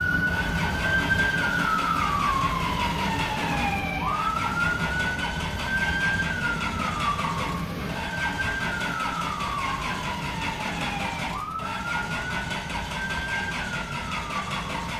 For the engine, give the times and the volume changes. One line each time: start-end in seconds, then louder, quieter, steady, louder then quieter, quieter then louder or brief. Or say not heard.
0.1-14.9 steady.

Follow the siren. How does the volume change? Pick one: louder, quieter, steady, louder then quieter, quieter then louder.
quieter.